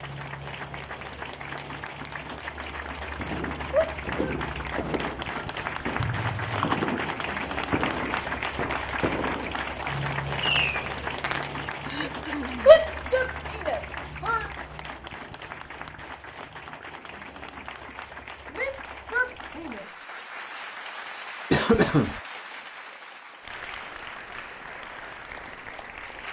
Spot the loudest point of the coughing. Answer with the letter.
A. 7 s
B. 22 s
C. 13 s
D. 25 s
B.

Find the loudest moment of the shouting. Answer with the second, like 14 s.
13 s.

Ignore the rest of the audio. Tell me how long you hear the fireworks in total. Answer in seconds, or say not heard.
8 s.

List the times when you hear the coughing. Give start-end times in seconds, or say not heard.
6.0-6.8, 11.8-12.8, 21.5-22.2.